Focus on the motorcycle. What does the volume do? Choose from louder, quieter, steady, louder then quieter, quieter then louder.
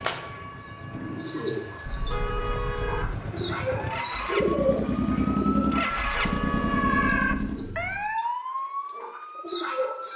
louder.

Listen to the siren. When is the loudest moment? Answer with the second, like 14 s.
7 s.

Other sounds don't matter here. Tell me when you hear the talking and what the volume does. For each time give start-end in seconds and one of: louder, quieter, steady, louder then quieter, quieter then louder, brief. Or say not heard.
not heard.